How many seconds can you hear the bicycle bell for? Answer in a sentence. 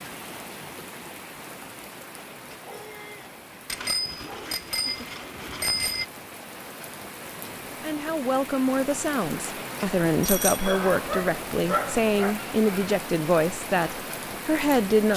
The bicycle bell can be heard for 3 seconds in total.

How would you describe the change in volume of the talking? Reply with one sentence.
The volume of the talking stays about the same.